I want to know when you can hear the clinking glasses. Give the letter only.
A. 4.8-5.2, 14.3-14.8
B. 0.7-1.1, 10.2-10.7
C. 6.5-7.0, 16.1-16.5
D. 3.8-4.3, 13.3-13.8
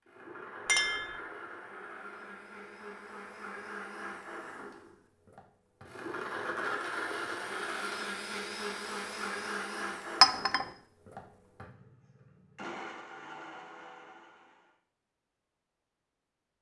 B.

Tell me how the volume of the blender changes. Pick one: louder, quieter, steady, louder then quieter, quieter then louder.
louder then quieter.